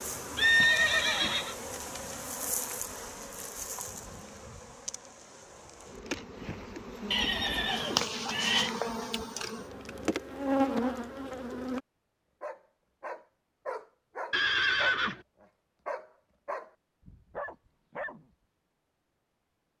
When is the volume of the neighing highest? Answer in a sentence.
The loudest moment of the neighing is at 1 second.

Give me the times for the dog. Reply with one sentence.
The dog can be heard from 12.4 to 18.2 s.